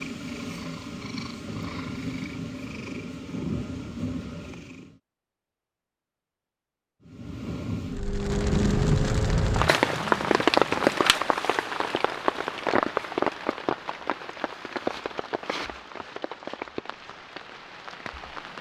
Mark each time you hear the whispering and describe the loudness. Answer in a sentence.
You can't hear the whispering here.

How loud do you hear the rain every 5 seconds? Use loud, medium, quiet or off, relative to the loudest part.
off, loud, loud, quiet.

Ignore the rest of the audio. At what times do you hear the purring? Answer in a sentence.
You can hear the purring from 0.0 to 5.0 s and from 7.0 to 11.0 s.